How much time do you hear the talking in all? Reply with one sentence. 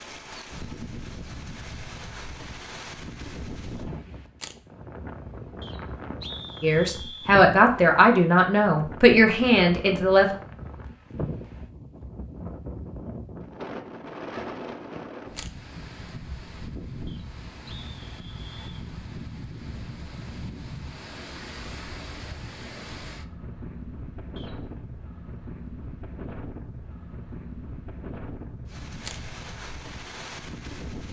The talking can be heard for 4 seconds in total.